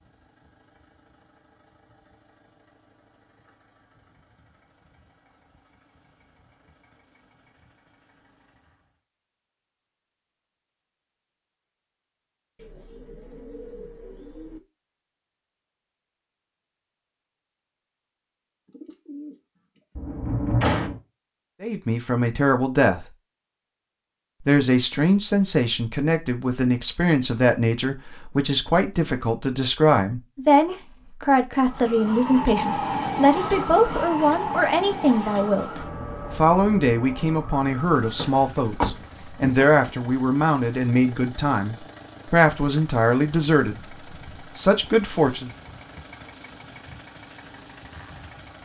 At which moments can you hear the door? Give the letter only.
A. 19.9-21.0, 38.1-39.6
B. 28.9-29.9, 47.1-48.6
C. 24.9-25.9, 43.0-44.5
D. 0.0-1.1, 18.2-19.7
A.